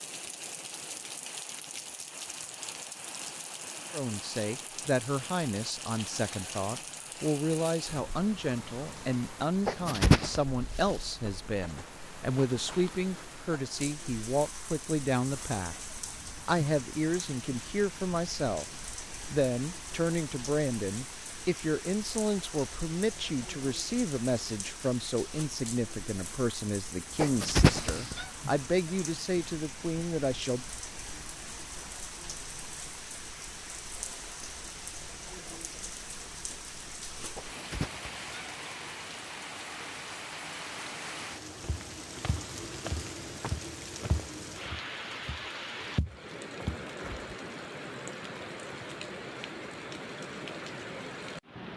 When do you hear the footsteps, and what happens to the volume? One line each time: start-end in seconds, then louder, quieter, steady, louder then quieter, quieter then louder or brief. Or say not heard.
41.6-47.3 quieter then louder.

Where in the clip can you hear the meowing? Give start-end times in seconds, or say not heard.
9.7-10.4, 27.2-28.2, 37.4-38.5.